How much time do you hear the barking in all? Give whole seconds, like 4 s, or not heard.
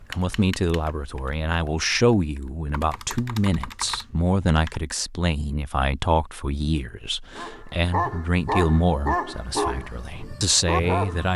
4 s.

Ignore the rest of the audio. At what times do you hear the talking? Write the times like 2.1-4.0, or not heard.
0.0-11.3.